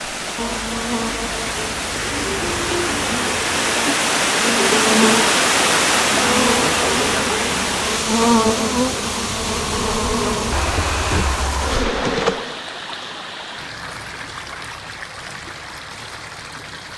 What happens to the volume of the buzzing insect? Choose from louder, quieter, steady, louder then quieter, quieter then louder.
louder.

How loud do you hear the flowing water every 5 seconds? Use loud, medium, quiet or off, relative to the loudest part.
loud, loud, medium, quiet.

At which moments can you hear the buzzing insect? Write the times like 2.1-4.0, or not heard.
0.0-12.6.